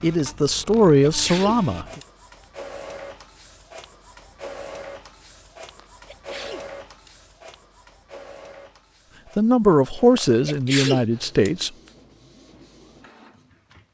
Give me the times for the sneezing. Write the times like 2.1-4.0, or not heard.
0.7-2.0, 5.8-7.1, 10.2-11.5.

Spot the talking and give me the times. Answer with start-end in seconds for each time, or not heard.
0.0-2.0, 9.3-11.7.